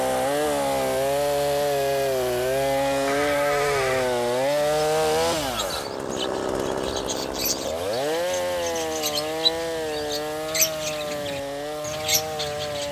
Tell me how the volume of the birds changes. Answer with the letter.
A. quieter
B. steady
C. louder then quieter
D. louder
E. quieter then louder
D.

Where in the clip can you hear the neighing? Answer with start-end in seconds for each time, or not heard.
3.0-4.1.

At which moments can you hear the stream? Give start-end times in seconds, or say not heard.
not heard.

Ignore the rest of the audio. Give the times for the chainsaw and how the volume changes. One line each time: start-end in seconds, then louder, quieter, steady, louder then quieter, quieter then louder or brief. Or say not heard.
0.0-12.8 quieter.